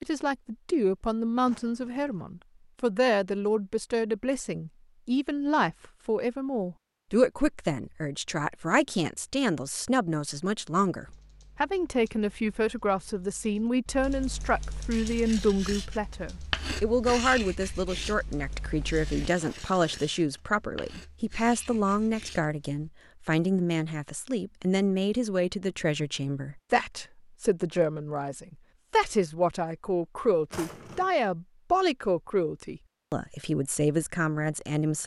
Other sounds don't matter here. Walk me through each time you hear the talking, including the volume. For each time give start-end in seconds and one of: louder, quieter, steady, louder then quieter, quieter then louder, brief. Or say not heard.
0.0-35.0 steady.